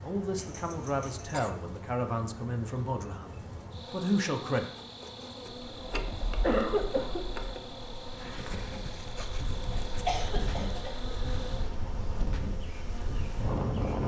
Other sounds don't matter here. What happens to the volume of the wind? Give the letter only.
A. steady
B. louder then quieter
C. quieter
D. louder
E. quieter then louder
D.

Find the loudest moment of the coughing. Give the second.
7 s.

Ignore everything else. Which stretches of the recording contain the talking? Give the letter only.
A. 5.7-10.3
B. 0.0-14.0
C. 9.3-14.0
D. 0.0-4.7
D.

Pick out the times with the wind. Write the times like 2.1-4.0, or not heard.
5.5-14.0.